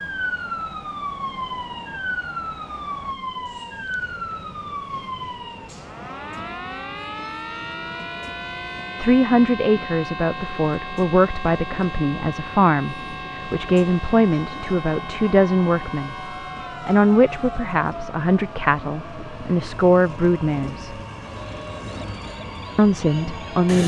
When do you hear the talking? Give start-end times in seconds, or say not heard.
8.9-16.1, 16.9-21.0, 22.8-23.8.